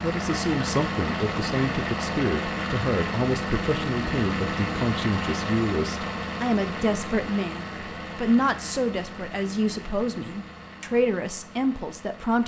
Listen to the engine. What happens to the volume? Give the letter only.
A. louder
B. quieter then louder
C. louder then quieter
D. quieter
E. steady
D.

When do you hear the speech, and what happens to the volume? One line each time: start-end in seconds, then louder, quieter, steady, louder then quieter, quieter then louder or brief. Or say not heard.
0.0-12.4 steady.